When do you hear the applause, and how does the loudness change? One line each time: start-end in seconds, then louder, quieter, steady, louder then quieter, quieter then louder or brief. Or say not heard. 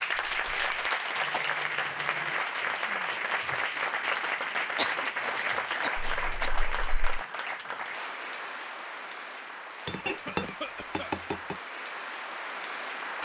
0.0-13.1 quieter.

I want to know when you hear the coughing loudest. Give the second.
5 s.